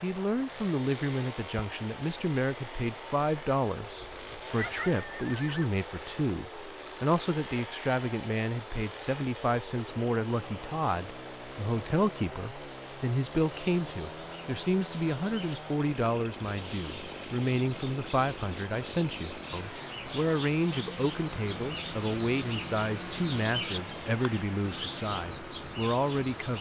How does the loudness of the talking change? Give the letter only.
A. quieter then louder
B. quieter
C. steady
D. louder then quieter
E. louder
C.